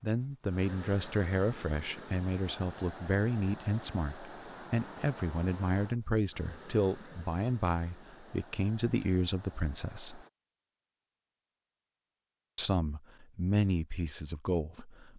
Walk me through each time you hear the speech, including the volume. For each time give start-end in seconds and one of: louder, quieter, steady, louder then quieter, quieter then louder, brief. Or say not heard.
0.0-10.2 steady
12.6-15.1 brief.